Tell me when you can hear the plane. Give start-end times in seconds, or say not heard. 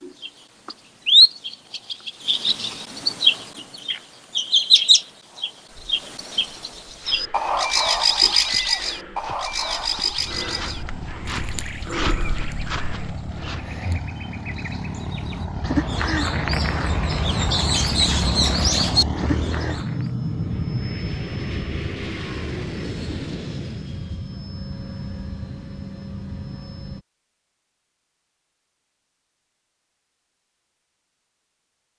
10.2-27.1.